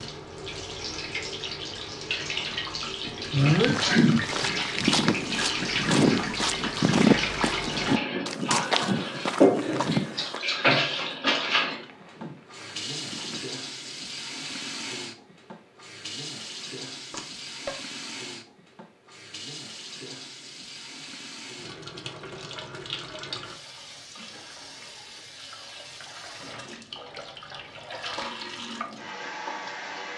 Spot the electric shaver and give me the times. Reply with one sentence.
You can't hear the electric shaver here.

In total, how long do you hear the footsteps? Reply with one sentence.
The footsteps can be heard for 10 seconds in total.